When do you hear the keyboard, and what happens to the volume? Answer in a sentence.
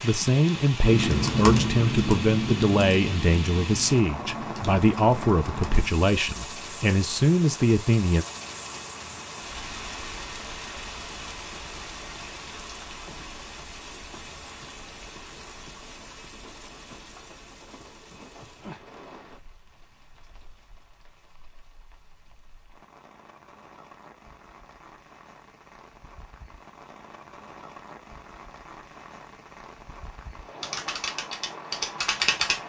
The keyboard can be heard from 0.8 to 6.0 s, getting quieter; and briefly from 30.6 to 32.6 s.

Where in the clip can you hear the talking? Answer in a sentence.
The talking can be heard from 0.0 to 8.2 s.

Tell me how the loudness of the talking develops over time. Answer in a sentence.
The loudness of the talking stays about the same.